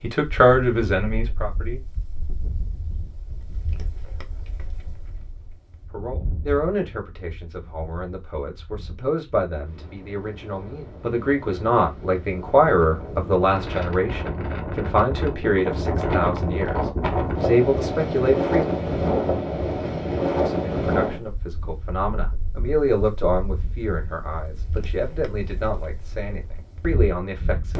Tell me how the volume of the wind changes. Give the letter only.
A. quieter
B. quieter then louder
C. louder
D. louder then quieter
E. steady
D.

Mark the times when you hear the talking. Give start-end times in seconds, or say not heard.
0.0-1.8, 5.9-18.6, 20.4-27.7.